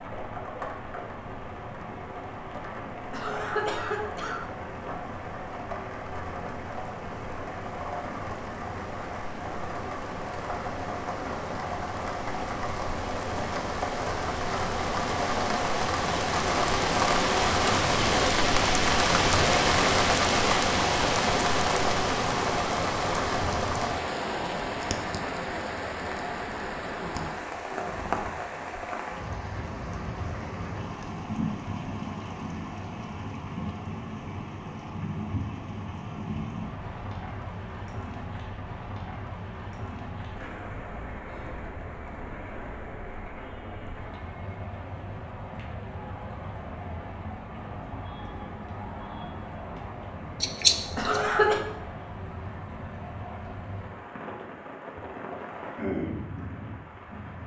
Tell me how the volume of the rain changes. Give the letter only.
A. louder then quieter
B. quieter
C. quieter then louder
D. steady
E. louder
A.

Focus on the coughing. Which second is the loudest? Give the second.
51 s.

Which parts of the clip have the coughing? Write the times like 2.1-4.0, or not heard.
3.1-4.4, 51.0-51.6.